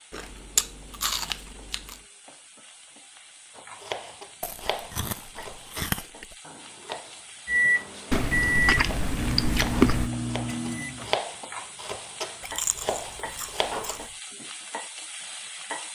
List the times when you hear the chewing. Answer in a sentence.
You can hear the chewing from 0.1 to 1.9 s, from 4.4 to 6.3 s, from 8.1 to 10.1 s and from 12.4 to 14.1 s.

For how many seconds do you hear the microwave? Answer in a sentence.
The microwave can be heard for 4 seconds in total.